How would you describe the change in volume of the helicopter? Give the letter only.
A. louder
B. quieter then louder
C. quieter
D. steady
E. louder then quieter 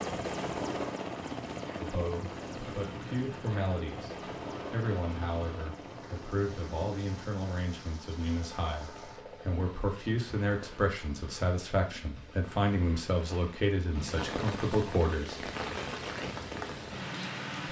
C.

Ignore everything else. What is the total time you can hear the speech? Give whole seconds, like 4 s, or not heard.
14 s.